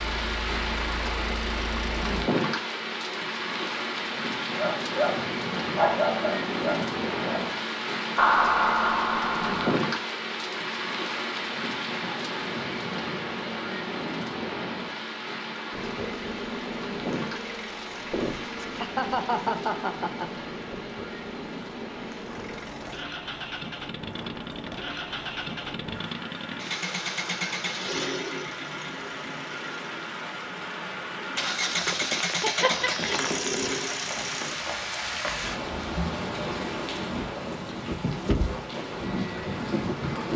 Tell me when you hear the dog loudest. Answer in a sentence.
The loudest moment of the dog is at 6 seconds.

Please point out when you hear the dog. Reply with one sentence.
You can hear the dog from 4.5 to 7.5 s.